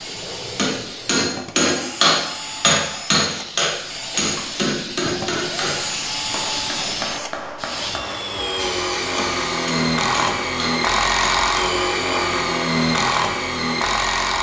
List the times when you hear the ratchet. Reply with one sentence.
You can't hear the ratchet here.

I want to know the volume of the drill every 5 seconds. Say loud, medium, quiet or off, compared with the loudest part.
quiet, medium, loud.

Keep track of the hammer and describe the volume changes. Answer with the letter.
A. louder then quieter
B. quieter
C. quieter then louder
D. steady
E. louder
B.